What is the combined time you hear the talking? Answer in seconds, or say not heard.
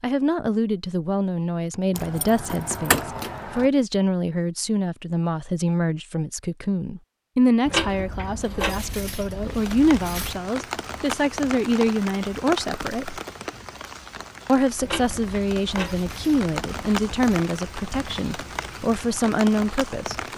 19 s.